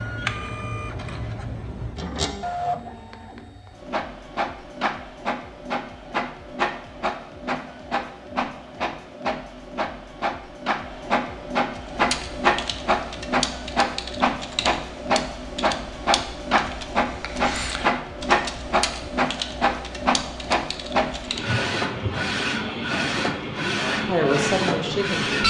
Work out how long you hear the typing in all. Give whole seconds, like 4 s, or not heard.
10 s.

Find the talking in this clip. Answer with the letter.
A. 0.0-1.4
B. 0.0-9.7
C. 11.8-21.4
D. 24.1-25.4
D.